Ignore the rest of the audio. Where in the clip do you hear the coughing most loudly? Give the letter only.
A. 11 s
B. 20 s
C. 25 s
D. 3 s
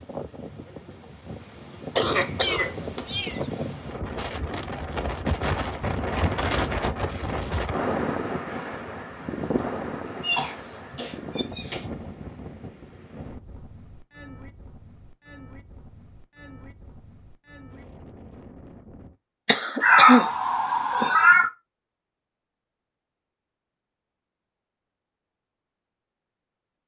B.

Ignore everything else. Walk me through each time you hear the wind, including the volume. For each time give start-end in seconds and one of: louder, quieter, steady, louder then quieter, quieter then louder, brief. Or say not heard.
0.0-19.1 louder then quieter.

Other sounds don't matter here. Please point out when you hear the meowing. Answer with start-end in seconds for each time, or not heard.
2.4-3.5, 10.1-11.7, 19.8-21.5.